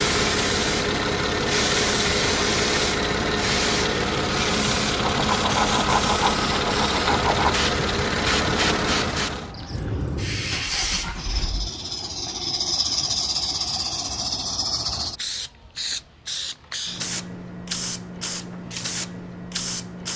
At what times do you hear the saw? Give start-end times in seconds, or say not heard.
5.0-7.6.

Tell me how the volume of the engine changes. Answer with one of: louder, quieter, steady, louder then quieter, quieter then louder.
quieter.